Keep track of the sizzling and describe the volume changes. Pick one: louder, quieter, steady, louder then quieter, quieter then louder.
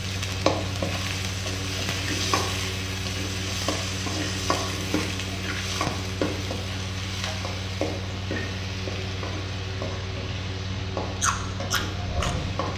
quieter.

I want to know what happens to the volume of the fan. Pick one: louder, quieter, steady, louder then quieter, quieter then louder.
steady.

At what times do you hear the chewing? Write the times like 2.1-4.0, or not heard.
11.1-12.7.